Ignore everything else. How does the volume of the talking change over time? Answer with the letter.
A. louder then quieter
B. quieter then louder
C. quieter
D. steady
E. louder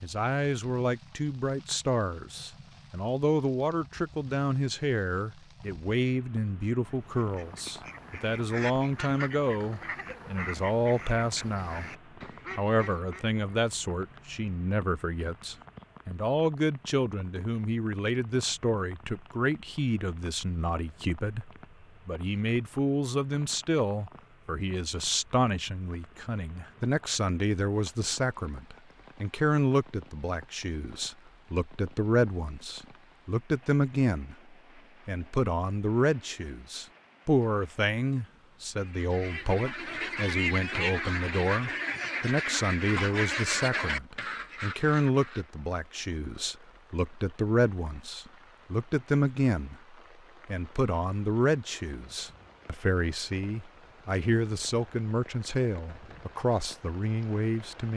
D.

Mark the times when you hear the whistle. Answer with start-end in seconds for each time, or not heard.
not heard.